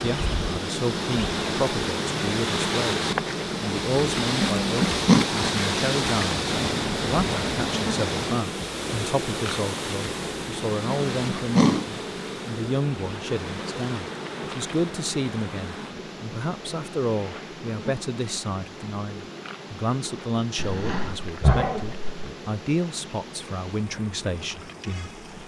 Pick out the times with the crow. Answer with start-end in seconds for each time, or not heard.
not heard.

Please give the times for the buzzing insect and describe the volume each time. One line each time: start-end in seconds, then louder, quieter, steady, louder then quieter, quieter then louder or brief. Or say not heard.
0.0-25.4 quieter.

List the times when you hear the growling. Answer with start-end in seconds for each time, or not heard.
4.4-5.3, 11.1-11.8, 20.6-22.4.